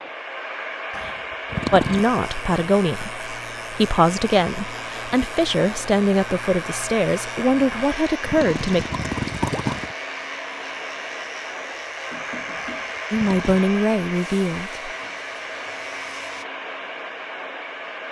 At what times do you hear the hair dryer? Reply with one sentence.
You can hear the hair dryer from 0.0 to 18.0 s.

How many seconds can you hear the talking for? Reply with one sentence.
You can hear the talking for 9 seconds altogether.